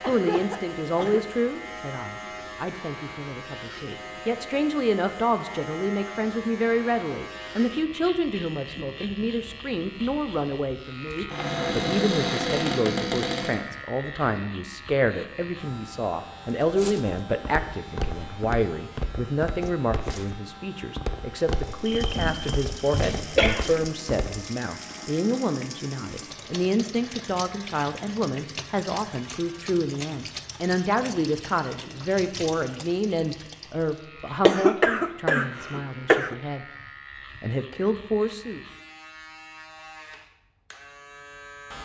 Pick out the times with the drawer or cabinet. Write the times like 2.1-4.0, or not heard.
11.3-13.6, 21.9-23.3.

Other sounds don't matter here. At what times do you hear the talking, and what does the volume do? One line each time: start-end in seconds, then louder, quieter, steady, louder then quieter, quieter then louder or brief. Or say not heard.
0.0-36.6 steady
37.4-38.6 brief.